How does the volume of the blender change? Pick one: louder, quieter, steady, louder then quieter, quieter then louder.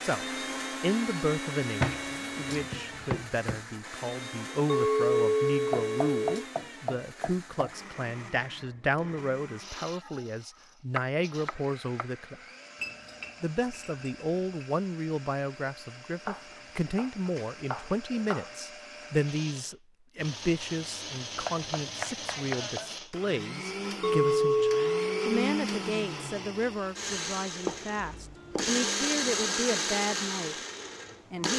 quieter then louder.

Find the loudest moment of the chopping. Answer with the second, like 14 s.
2 s.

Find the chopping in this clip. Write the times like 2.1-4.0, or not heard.
1.8-3.6, 5.7-7.7, 10.9-12.1, 16.2-18.5, 21.4-22.9, 27.6-28.7.